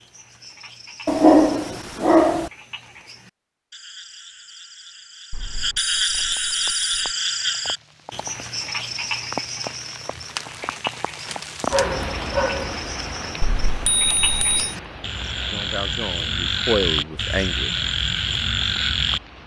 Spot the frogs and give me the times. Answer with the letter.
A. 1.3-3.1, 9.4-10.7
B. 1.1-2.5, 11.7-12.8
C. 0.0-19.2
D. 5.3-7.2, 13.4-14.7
C.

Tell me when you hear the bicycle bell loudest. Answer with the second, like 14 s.
14 s.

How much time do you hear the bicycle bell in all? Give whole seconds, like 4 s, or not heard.
3 s.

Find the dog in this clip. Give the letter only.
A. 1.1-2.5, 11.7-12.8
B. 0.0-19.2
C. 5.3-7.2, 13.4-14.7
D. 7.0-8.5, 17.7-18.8
A.